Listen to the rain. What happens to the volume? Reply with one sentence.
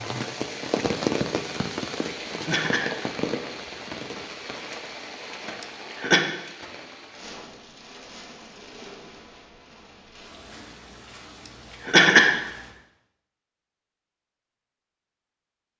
The volume of the rain goes down.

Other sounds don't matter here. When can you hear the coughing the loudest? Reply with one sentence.
The loudest moment of the coughing is at 12 seconds.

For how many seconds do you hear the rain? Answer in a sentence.
The rain can be heard for 13 seconds in total.